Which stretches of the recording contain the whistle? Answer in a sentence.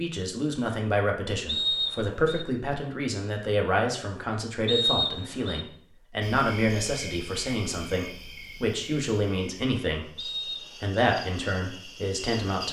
You can hear the whistle from 1.4 to 2.5 s, from 4.7 to 5.7 s and from 10.2 to 10.9 s.